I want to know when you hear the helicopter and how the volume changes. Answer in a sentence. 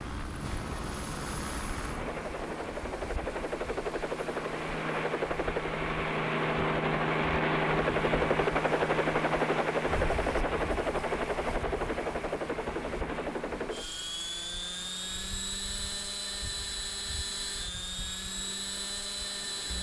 You can hear the helicopter from 0.0 to 19.7 s, getting louder then quieter.